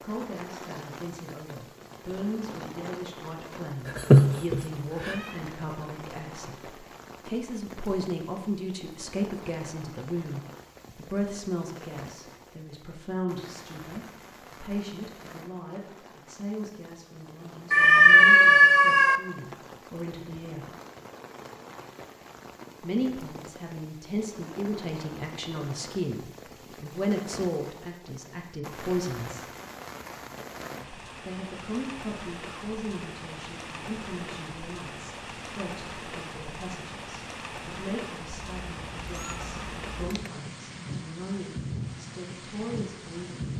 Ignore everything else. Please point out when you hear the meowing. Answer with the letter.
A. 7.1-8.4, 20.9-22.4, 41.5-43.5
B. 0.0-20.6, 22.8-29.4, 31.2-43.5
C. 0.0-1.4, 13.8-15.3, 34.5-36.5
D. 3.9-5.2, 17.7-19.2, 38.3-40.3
D.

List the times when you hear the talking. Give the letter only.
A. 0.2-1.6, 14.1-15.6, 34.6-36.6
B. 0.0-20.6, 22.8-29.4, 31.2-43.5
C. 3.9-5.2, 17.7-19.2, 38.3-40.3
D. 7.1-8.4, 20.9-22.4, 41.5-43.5
B.